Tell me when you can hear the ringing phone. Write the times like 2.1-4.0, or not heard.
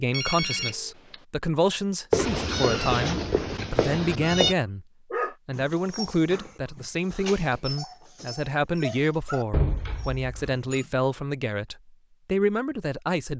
0.1-1.2, 9.5-10.8.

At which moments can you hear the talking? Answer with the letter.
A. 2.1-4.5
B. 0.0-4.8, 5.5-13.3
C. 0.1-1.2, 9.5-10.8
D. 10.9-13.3
B.